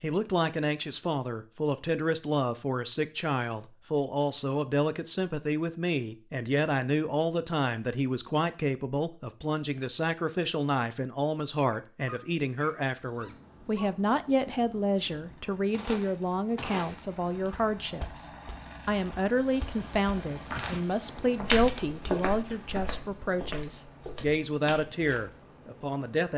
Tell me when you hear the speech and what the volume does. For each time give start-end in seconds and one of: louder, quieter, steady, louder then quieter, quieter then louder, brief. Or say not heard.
0.0-26.3 steady.